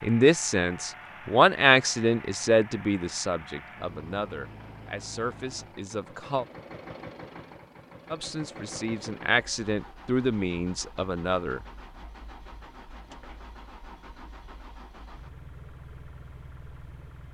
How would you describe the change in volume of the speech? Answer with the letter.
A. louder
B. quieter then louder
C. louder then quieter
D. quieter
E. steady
B.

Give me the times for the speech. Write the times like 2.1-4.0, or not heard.
0.0-6.5, 8.1-11.6.